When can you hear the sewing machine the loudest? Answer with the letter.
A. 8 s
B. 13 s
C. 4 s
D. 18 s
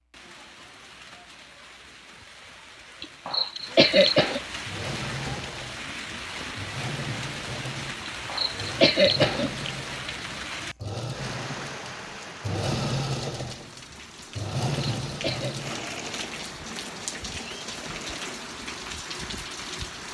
B.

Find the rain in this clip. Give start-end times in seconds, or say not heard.
0.0-20.0.